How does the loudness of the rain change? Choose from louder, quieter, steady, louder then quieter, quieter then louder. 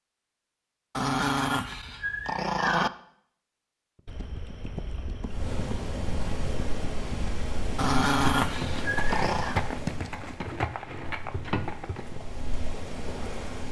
quieter then louder.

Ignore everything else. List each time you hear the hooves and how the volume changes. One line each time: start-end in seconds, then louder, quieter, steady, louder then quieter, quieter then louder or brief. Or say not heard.
4.0-12.2 louder.